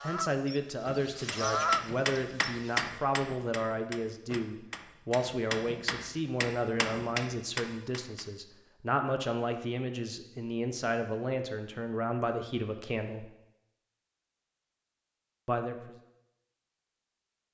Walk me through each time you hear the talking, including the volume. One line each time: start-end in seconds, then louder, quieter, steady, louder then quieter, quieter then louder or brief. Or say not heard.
0.0-13.2 steady
15.4-15.9 brief.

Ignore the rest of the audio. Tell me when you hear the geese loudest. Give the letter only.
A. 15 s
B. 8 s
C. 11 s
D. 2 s
D.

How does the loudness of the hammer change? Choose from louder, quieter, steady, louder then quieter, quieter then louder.
quieter then louder.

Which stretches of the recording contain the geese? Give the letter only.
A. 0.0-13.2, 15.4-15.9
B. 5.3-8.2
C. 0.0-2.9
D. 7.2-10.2
C.